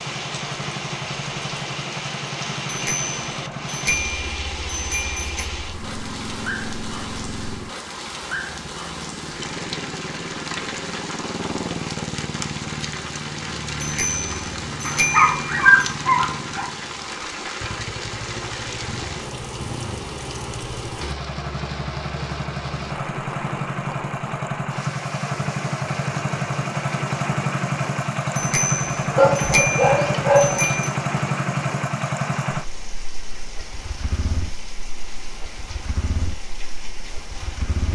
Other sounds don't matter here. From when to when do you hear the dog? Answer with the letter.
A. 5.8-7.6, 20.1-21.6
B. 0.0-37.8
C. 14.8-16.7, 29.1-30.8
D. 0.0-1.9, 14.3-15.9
C.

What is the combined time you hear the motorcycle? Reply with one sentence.
The motorcycle can be heard for 38 seconds in total.